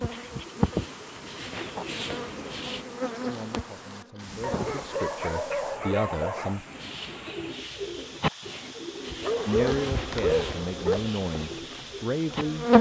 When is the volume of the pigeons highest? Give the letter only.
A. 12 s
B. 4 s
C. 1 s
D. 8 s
D.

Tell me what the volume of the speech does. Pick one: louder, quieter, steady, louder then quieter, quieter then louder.
louder.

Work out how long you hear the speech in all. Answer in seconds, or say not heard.
7 s.